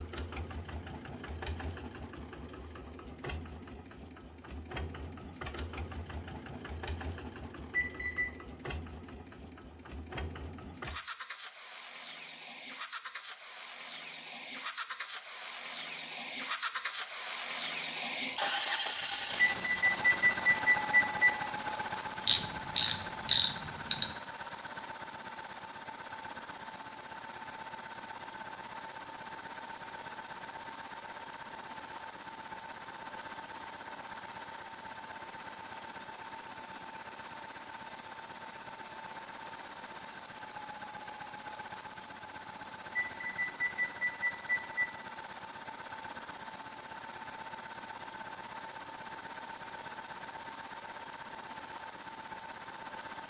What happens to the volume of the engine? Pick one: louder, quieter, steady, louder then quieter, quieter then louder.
louder then quieter.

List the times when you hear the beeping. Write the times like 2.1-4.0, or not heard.
7.7-8.4, 19.4-21.4, 43.0-44.9.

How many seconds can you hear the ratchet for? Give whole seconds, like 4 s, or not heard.
2 s.